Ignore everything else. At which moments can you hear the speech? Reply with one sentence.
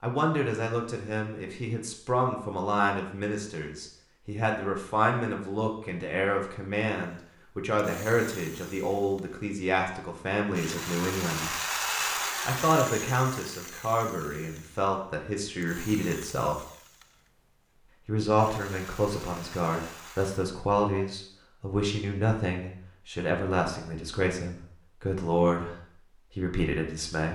You can hear the speech from 0.0 to 11.6 s, from 12.4 to 16.6 s, from 18.1 to 25.8 s and from 26.4 to 27.3 s.